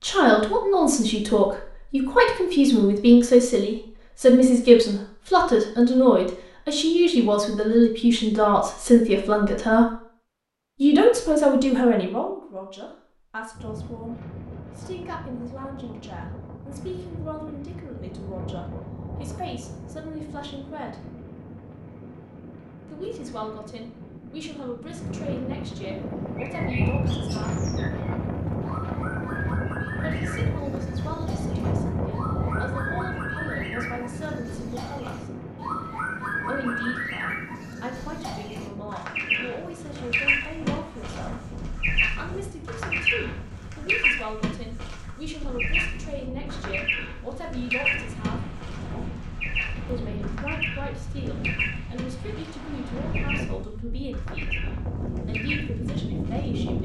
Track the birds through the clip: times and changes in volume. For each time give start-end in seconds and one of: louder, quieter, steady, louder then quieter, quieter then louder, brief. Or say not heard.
26.4-56.5 louder then quieter.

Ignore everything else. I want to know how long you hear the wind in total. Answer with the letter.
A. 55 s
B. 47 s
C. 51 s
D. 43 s
D.